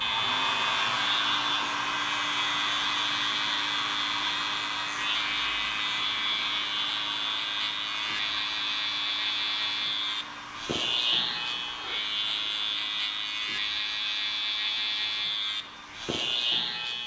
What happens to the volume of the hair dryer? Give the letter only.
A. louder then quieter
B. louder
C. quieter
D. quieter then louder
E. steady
C.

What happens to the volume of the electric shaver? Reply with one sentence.
The volume of the electric shaver stays about the same.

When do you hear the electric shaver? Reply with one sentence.
The electric shaver can be heard from 0.0 to 17.0 s.